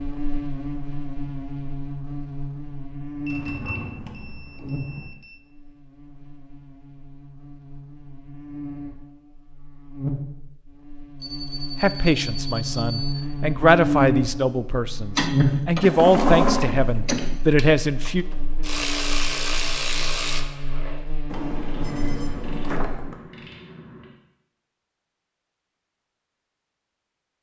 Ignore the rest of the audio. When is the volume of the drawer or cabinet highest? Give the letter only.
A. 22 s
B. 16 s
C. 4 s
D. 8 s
B.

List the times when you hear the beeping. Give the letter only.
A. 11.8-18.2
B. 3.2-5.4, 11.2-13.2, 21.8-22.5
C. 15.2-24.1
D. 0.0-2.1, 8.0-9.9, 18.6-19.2
B.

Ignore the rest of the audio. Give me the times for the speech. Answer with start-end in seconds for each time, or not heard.
11.8-18.2.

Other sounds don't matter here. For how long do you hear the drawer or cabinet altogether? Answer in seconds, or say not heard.
5 s.